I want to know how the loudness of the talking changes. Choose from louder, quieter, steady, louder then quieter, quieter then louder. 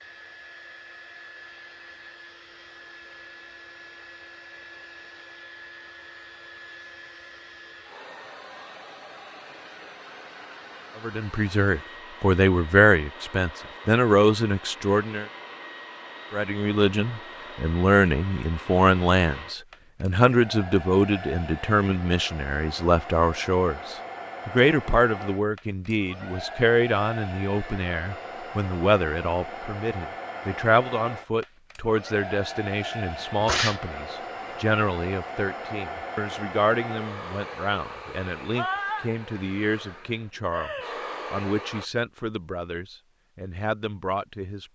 quieter.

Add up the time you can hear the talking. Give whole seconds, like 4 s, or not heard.
33 s.